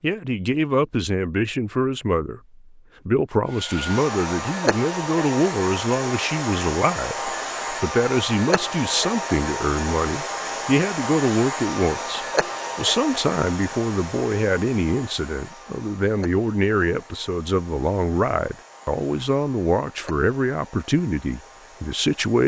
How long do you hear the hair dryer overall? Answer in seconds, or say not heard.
19 s.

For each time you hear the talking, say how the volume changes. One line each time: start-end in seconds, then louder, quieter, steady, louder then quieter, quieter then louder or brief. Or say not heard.
0.0-22.4 steady.